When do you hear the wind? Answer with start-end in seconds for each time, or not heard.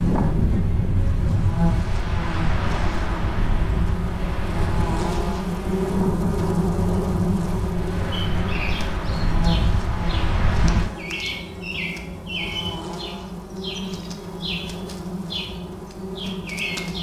0.0-10.9.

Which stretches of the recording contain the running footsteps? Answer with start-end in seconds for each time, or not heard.
not heard.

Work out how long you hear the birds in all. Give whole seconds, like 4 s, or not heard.
9 s.